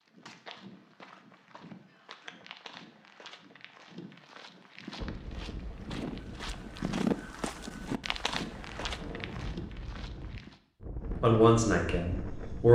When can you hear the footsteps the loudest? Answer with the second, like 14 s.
7 s.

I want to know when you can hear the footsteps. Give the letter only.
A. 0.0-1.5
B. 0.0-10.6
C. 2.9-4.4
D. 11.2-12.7
B.